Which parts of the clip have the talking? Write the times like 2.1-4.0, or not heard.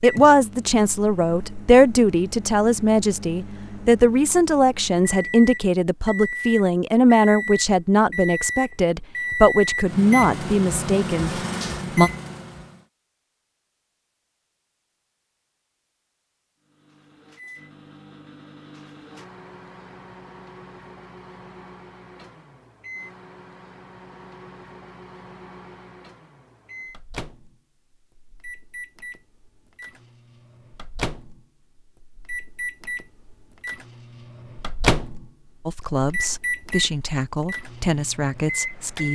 0.0-12.1, 35.6-39.1.